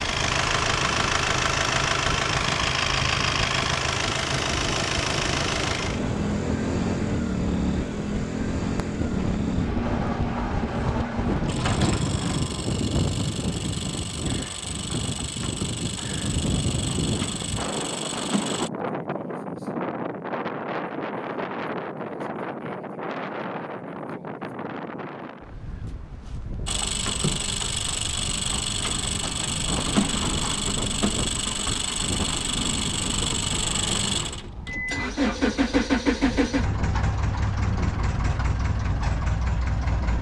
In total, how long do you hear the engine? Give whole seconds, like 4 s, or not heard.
32 s.